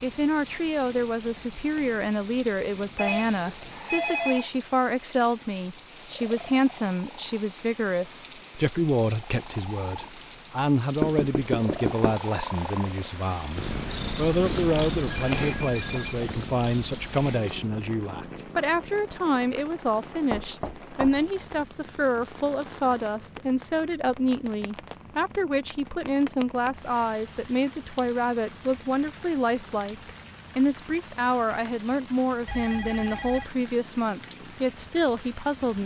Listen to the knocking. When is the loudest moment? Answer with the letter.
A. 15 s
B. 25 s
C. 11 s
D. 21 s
C.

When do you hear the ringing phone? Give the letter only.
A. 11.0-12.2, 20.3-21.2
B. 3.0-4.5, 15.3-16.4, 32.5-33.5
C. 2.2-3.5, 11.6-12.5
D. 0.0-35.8
B.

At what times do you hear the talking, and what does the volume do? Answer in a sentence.
The talking can be heard from 0.0 to 35.8 s, at a steady volume.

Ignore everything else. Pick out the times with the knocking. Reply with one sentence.
The knocking can be heard from 11.0 to 12.2 s and from 20.3 to 21.2 s.